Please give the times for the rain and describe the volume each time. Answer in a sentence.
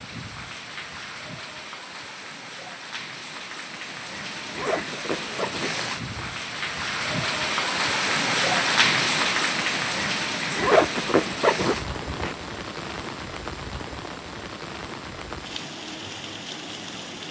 The rain can be heard from 0.0 to 17.2 s, getting louder then quieter.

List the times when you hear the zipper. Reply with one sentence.
The zipper can be heard from 4.5 to 6.3 s and from 10.6 to 12.3 s.